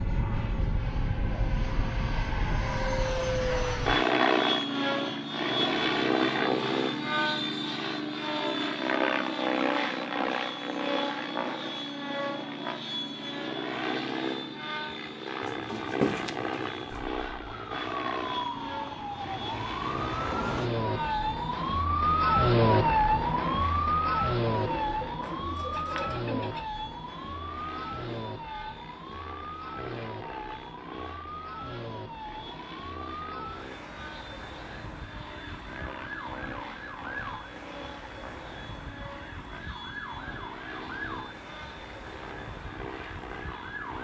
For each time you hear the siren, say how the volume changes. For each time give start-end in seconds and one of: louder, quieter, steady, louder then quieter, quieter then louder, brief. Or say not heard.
16.9-43.9 quieter.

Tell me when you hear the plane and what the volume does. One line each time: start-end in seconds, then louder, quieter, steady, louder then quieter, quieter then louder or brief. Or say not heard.
0.0-43.9 quieter.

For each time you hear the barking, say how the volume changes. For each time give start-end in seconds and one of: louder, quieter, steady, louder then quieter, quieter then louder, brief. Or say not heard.
not heard.